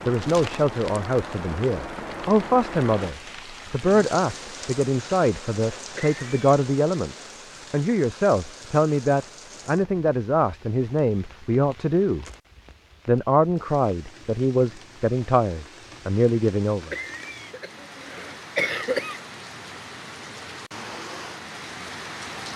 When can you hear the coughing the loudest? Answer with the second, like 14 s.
19 s.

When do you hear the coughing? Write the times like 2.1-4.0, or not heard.
6.0-6.4, 16.9-19.2.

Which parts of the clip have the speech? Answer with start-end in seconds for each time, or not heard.
0.1-12.2, 13.1-16.9.